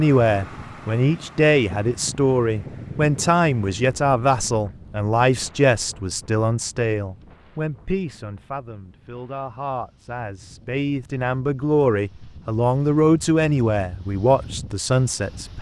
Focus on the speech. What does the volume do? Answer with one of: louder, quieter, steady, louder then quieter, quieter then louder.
quieter then louder.